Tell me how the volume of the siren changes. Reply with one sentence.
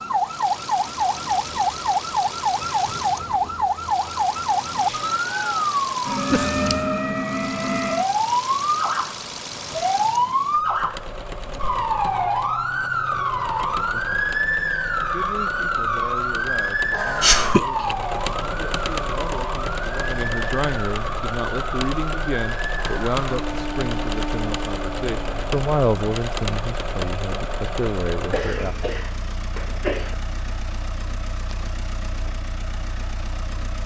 The volume of the siren goes down.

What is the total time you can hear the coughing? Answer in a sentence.
The coughing can be heard for 3 seconds in total.